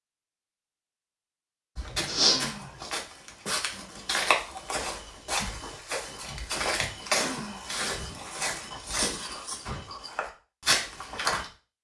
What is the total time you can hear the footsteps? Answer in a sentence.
The footsteps can be heard for 10 seconds in total.